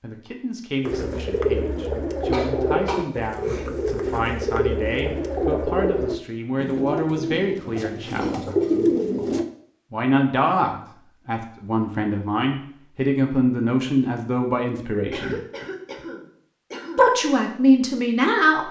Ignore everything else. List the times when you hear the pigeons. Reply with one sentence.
The pigeons can be heard from 0.8 to 9.4 s.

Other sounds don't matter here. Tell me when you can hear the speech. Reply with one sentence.
You can hear the speech from 0.0 to 8.4 s, from 9.9 to 15.4 s and from 16.9 to 18.6 s.